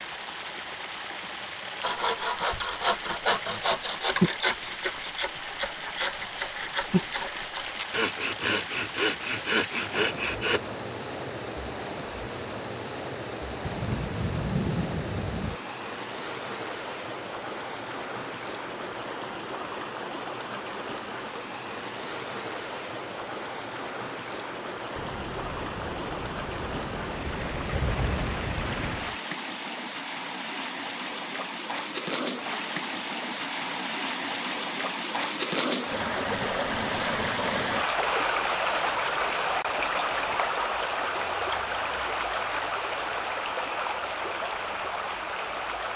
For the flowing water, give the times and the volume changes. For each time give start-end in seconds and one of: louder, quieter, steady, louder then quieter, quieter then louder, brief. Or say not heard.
0.0-45.9 louder.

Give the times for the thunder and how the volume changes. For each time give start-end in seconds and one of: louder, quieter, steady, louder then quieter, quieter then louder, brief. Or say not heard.
13.6-15.6 brief
24.9-29.1 louder.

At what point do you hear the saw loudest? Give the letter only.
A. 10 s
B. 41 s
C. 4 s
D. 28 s
C.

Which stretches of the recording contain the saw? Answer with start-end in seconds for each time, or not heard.
1.8-10.6.